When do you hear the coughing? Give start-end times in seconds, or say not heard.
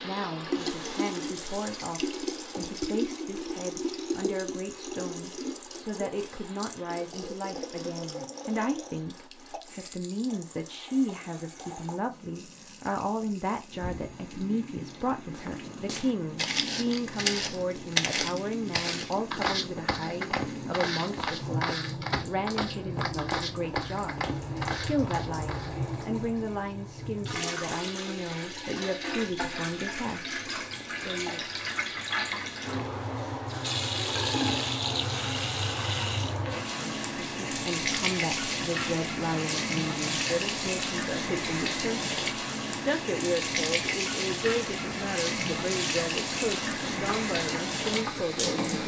not heard.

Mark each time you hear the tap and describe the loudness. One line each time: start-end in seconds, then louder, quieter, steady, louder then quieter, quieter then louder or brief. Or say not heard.
0.0-48.8 quieter then louder.